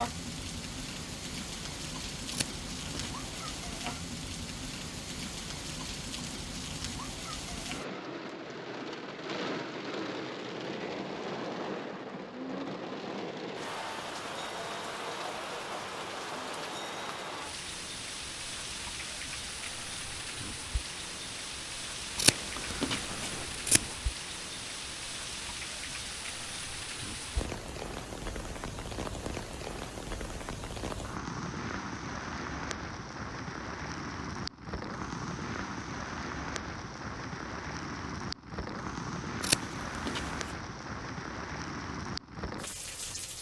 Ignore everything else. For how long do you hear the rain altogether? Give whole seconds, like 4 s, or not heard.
43 s.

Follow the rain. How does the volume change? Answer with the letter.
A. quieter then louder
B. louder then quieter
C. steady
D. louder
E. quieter
C.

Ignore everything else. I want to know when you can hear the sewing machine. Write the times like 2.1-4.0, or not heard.
not heard.